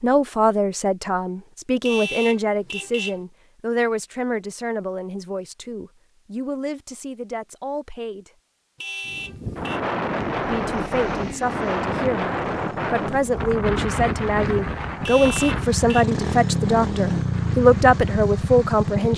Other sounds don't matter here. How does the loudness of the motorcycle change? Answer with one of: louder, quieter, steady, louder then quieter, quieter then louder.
louder.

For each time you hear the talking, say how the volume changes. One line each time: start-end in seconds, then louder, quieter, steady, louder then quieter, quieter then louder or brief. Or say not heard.
0.0-8.3 quieter
10.4-19.1 louder.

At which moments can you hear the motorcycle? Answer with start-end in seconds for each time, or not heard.
10.2-19.1.